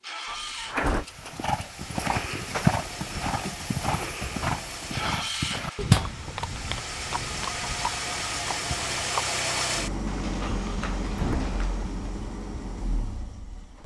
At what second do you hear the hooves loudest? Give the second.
3 s.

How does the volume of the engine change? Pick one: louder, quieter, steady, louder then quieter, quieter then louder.
louder then quieter.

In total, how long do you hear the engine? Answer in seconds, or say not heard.
14 s.